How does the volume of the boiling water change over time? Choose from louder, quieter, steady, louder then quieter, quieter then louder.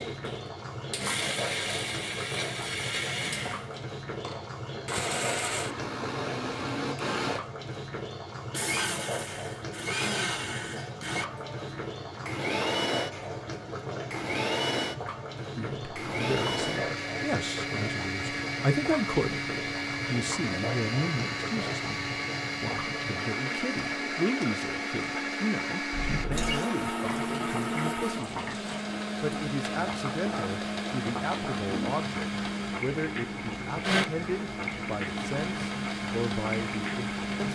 steady.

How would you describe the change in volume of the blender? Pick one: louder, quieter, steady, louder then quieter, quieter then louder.
steady.